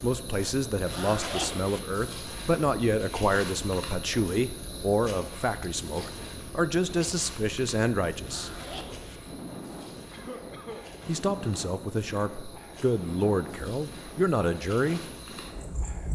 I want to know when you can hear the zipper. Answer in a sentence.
You can hear the zipper from 0.8 to 1.8 s and from 8.2 to 9.2 s.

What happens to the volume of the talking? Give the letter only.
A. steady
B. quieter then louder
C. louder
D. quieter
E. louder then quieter
A.